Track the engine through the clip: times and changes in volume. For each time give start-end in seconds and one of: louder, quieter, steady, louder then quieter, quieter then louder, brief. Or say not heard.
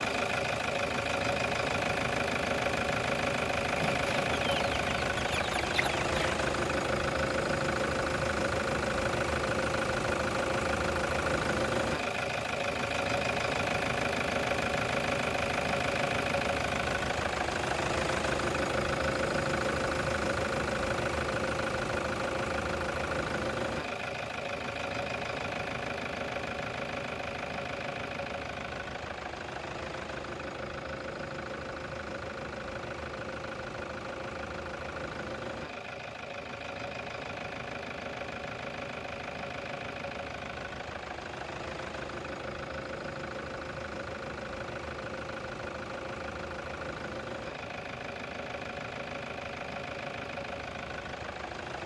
0.0-51.8 quieter.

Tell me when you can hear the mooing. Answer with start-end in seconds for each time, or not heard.
not heard.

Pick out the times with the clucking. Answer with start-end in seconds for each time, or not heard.
3.8-6.3.